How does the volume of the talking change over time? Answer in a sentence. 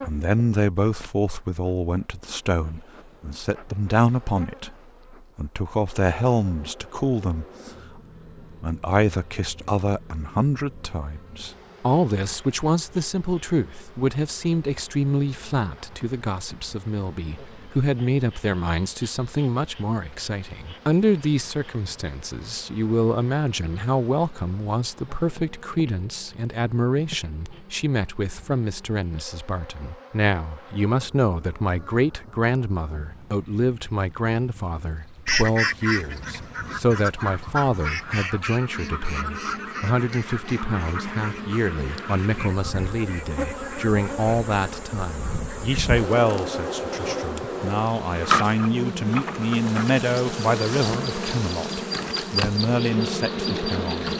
The loudness of the talking stays about the same.